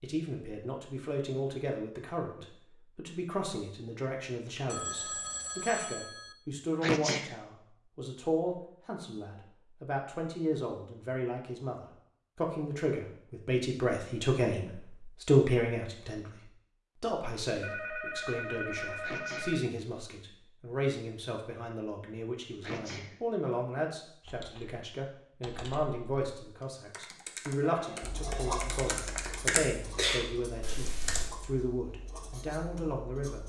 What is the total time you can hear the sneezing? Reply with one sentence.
The sneezing can be heard for 2 seconds in total.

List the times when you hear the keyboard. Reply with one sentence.
You can hear the keyboard from 24.2 to 31.3 s.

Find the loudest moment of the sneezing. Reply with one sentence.
The volume of the sneezing peaks at 7 seconds.